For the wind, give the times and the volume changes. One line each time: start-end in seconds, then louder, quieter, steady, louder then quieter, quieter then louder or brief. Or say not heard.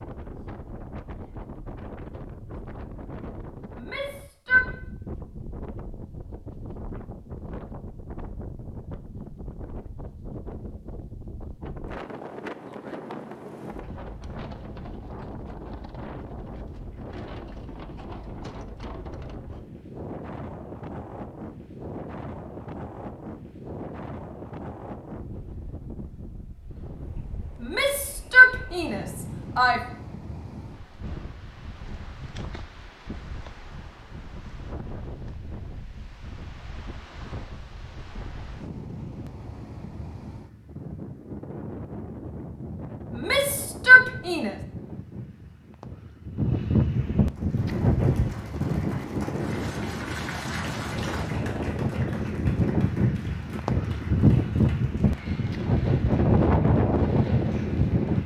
0.0-58.2 louder.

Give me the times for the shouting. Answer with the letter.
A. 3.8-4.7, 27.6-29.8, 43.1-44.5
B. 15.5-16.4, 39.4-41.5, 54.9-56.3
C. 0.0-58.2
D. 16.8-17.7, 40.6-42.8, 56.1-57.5
A.